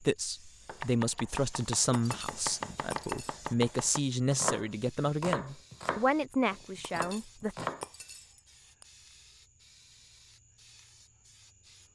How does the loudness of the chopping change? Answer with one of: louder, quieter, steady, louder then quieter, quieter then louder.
louder then quieter.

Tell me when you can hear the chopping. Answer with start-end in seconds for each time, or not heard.
0.7-7.8.